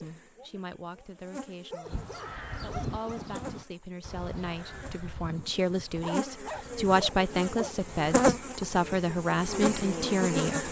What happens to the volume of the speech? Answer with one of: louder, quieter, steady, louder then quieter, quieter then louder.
louder.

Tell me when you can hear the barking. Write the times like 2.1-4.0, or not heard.
1.7-3.4, 5.9-7.8.